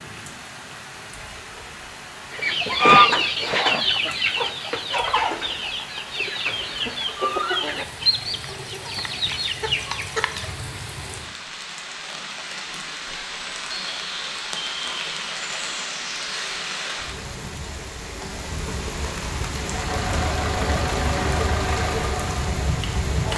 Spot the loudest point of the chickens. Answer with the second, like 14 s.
3 s.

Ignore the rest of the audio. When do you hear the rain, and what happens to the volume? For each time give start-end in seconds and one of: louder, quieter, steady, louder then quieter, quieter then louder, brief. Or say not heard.
0.0-23.3 louder.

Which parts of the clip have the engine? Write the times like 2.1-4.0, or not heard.
19.6-23.3.